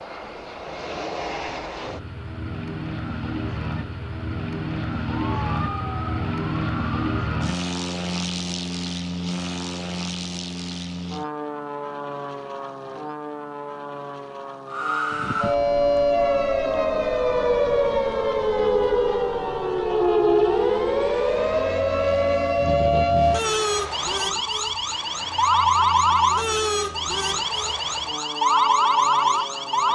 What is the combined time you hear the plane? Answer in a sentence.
You can hear the plane for 30 seconds altogether.